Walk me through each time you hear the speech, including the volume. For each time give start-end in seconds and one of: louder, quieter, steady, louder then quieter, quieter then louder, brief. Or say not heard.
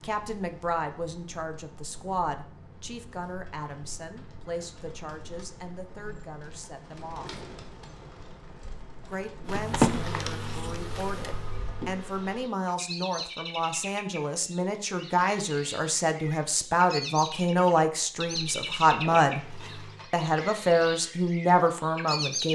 0.0-7.4 quieter
9.1-19.4 louder
20.1-22.5 brief.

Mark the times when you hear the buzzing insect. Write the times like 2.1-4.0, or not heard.
9.4-12.4, 18.1-20.1.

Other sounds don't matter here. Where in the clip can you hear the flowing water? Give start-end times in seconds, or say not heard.
not heard.